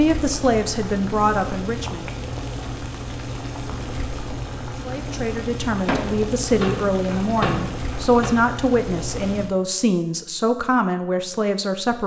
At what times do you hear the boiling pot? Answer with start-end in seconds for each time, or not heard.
0.0-9.5.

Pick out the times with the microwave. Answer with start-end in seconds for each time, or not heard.
5.8-8.3.